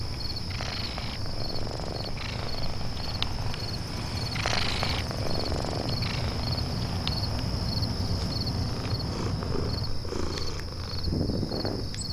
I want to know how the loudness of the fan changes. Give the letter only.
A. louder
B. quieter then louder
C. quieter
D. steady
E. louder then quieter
A.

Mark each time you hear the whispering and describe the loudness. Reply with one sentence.
You can't hear the whispering here.